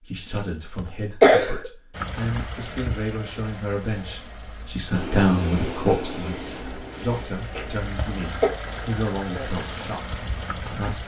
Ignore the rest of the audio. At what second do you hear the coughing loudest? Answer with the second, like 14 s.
1 s.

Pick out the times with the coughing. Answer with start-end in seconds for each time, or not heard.
0.3-1.7, 7.5-8.5.